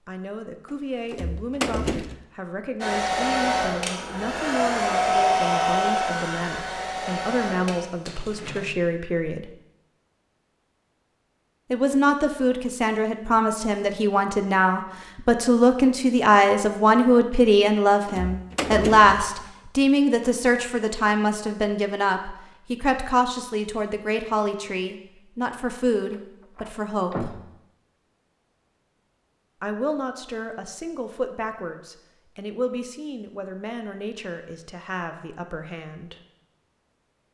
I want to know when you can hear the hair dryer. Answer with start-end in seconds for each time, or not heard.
2.8-8.7.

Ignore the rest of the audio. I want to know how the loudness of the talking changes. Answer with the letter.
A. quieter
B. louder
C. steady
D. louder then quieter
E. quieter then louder
D.